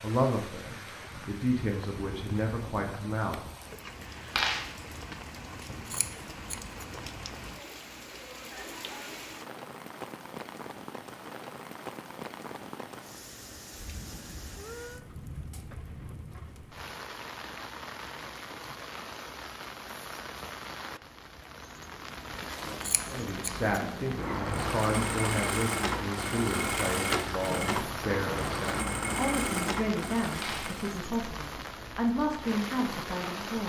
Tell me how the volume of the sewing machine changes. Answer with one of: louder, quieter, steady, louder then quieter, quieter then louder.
steady.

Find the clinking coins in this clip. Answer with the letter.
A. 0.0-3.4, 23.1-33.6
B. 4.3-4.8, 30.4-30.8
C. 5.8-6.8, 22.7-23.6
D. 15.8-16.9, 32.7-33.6
B.